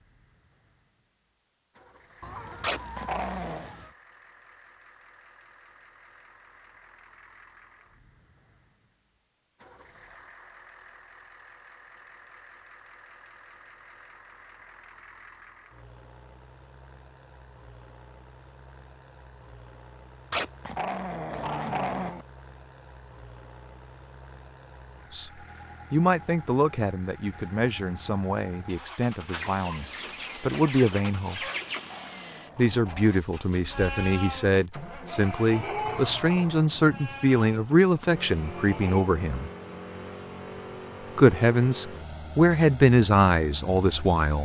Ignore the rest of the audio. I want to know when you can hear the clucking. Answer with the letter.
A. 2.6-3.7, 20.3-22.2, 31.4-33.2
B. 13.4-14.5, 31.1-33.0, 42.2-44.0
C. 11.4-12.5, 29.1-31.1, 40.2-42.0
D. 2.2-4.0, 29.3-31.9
D.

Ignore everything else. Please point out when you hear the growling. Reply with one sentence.
The growling can be heard from 2.6 to 3.7 s, from 20.3 to 22.2 s and from 31.4 to 33.2 s.